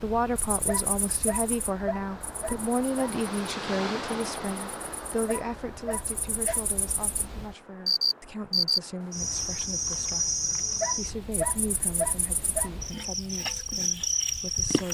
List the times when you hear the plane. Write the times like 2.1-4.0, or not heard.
not heard.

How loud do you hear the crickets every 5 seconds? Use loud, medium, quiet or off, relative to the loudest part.
quiet, loud, loud.